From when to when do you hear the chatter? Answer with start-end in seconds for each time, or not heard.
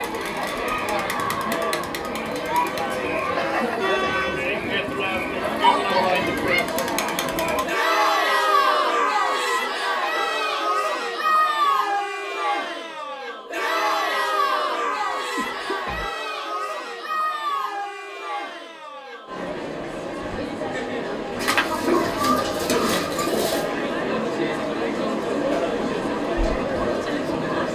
0.0-27.7.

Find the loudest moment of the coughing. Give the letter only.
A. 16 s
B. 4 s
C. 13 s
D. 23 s
D.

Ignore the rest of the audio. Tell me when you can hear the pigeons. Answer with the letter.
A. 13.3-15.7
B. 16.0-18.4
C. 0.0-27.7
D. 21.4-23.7
D.